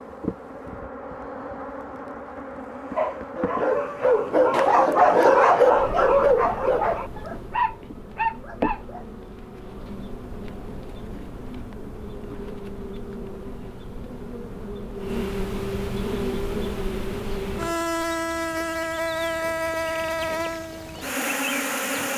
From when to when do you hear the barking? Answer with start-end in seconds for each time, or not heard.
3.0-9.1.